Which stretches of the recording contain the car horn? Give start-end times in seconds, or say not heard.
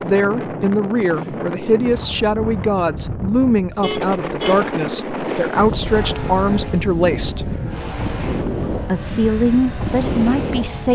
3.8-4.7.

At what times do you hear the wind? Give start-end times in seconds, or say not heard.
0.0-10.9.